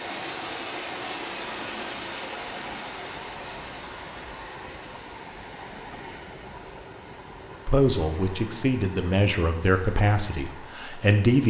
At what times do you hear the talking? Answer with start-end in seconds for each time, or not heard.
7.7-11.4.